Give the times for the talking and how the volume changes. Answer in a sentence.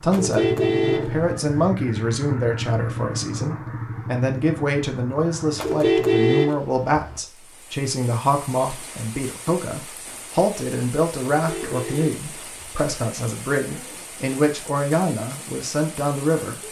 You can hear the talking from 0.0 to 16.6 s, at a steady volume.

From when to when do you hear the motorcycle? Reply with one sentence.
The motorcycle can be heard from 0.0 to 5.8 s.